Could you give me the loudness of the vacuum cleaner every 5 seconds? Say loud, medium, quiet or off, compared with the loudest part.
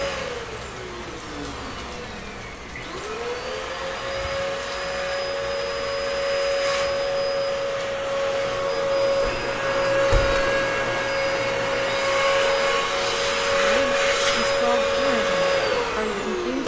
medium, loud, loud, loud.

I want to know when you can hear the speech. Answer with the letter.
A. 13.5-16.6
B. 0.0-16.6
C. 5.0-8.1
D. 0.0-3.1
A.